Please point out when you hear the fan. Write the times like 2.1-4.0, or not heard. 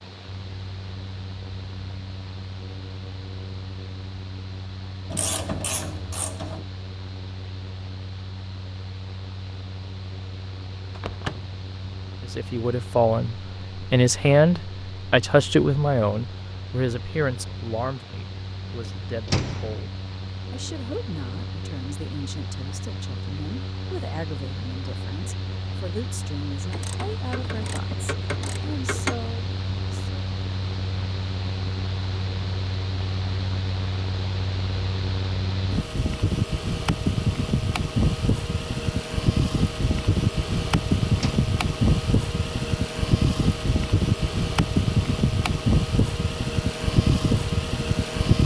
0.0-48.4.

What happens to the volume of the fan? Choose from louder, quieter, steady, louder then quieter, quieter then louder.
louder.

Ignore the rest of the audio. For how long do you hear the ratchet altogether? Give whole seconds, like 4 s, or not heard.
4 s.